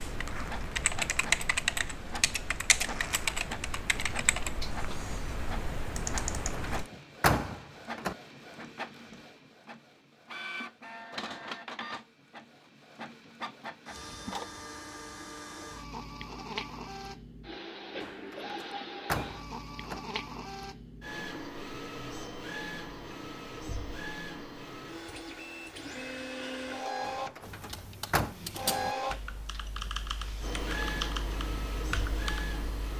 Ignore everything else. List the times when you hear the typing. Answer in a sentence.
The typing can be heard from 0.0 to 6.8 s and from 27.4 to 32.9 s.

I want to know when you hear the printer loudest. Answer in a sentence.
The volume of the printer peaks at 29 seconds.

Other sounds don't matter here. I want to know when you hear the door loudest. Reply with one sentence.
The loudest moment of the door is at 7 seconds.